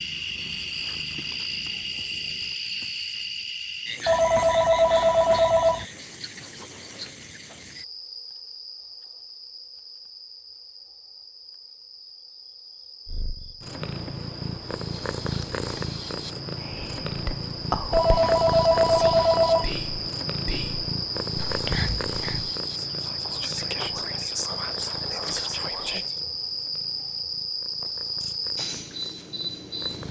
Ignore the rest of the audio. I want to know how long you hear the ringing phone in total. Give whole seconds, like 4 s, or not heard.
4 s.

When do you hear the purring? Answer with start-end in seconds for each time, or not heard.
0.0-2.5, 13.1-30.0.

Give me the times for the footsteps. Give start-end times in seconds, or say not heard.
not heard.